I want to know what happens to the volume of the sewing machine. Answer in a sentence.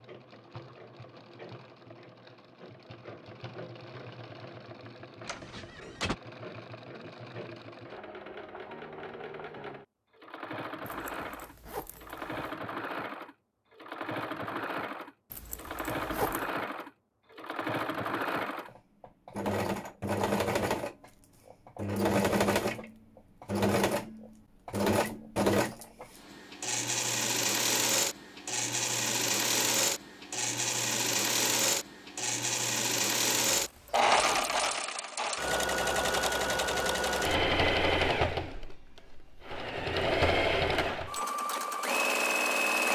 The loudness of the sewing machine goes up.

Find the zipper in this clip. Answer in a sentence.
The zipper can be heard from 10.8 to 12.6 s, from 15.3 to 16.4 s and from 33.5 to 34.8 s.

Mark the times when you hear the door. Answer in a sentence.
You can hear the door from 5.2 to 6.2 s.